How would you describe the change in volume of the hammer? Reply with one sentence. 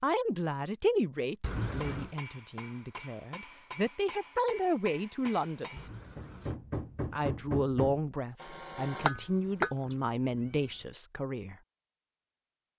The volume of the hammer goes up.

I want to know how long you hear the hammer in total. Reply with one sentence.
You can hear the hammer for 8 seconds altogether.